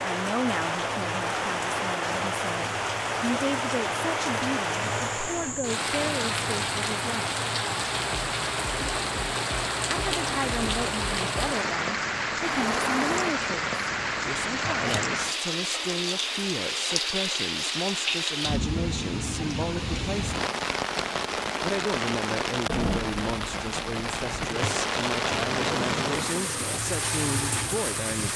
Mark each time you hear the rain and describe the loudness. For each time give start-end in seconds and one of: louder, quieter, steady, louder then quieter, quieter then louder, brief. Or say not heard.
0.0-28.3 steady.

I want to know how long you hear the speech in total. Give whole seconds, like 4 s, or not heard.
25 s.